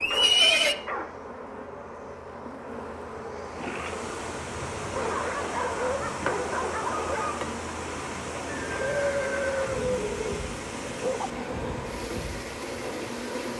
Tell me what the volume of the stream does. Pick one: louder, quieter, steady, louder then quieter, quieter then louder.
steady.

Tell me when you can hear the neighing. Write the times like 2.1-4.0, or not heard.
0.0-0.8, 8.6-10.3.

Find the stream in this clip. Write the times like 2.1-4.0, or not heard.
3.5-13.5.